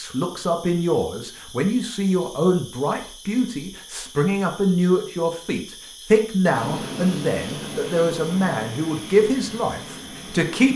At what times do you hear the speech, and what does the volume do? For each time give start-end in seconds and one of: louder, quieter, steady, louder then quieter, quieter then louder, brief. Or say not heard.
0.0-10.7 steady.